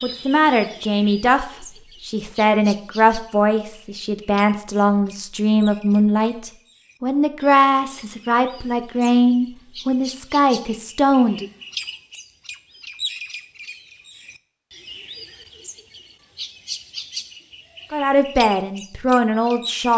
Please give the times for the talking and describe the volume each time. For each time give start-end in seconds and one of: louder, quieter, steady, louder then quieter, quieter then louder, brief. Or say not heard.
0.0-11.4 steady
17.9-19.9 brief.